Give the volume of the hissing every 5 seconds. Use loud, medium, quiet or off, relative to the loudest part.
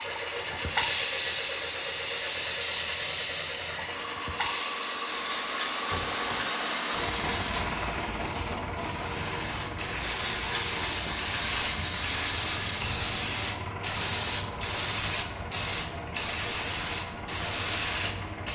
loud, medium, loud, loud.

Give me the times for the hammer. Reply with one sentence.
The hammer can't be heard in this clip.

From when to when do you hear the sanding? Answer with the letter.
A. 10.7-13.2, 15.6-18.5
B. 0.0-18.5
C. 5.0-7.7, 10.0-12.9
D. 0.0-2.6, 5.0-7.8
C.